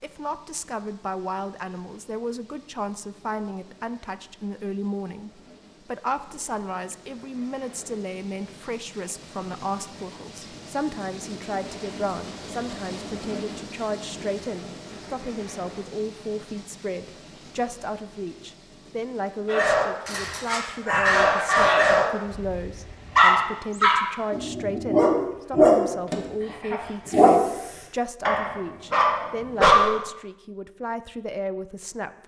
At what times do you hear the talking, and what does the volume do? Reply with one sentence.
The talking can be heard from 0.0 to 32.2 s, at a steady volume.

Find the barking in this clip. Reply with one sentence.
The barking can be heard from 19.4 to 29.9 s.